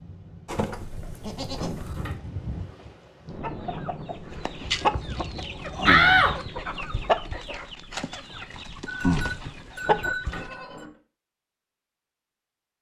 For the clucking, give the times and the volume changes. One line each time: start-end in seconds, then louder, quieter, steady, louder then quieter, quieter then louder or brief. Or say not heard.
3.4-10.6 quieter then louder.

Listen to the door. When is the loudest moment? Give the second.
6 s.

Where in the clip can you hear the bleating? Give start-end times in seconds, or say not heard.
0.5-2.1, 4.7-6.5, 8.8-10.8.